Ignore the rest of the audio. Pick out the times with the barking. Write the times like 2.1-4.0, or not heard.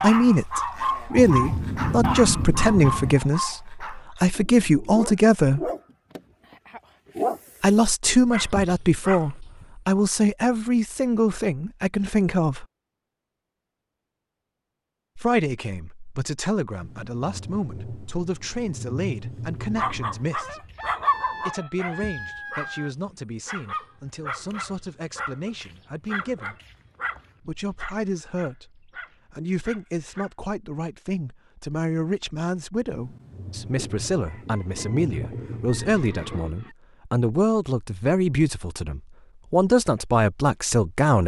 0.0-9.7, 19.8-30.3.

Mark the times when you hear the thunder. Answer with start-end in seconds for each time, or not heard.
1.1-3.1, 16.8-20.3, 32.9-36.1.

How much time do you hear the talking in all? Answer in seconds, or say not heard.
35 s.